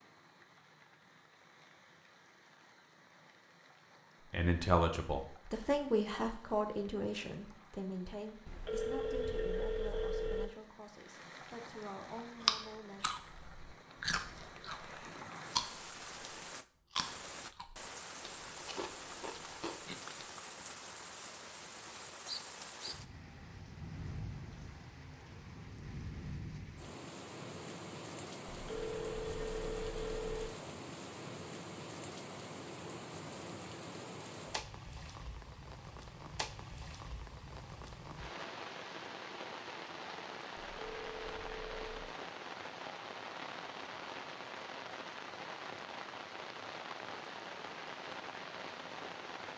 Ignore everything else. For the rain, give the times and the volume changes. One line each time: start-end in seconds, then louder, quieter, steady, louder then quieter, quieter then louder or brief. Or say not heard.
0.0-49.5 louder.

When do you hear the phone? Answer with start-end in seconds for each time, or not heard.
8.4-10.4, 28.5-30.5, 40.8-42.1.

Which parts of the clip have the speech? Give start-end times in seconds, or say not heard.
4.3-13.1.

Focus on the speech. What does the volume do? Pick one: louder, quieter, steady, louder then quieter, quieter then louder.
quieter.